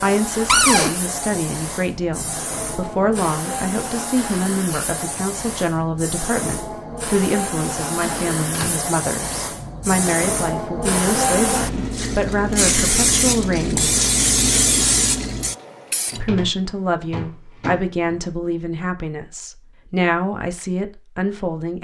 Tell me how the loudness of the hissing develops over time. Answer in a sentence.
The loudness of the hissing goes up.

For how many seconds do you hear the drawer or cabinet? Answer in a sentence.
The drawer or cabinet can be heard for 4 seconds in total.